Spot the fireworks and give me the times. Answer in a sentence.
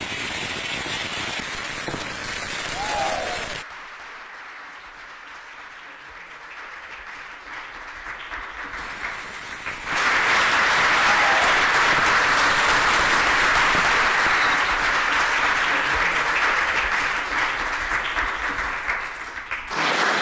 The fireworks can be heard from 0.0 to 3.6 s and from 8.8 to 14.6 s.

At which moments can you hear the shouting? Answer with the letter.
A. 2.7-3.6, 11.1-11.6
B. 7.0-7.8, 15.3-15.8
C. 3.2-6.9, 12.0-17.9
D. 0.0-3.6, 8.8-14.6
A.